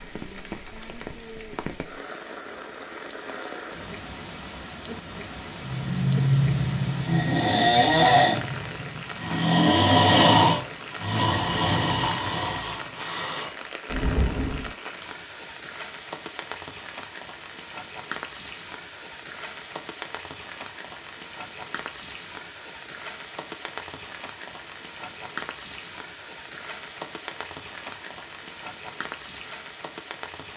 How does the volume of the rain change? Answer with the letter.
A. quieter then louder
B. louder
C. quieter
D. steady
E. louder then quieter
D.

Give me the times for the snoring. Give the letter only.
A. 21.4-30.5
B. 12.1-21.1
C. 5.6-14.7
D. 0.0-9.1
C.